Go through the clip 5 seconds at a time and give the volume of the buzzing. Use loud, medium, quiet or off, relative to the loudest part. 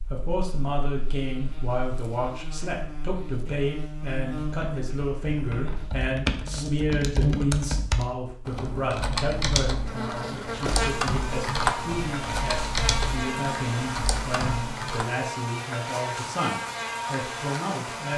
medium, loud, loud, loud.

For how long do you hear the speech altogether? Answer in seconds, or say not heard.
18 s.